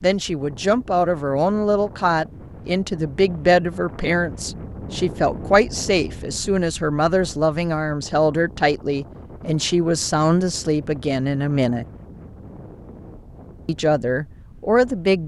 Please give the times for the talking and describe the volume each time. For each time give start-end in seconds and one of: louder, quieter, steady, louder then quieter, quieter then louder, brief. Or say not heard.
0.0-11.8 steady
13.7-15.2 brief.